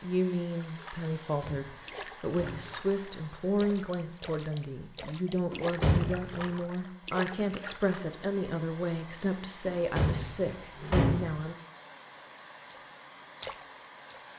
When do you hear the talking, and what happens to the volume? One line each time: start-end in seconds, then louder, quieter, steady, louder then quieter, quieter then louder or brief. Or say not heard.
0.0-11.6 steady.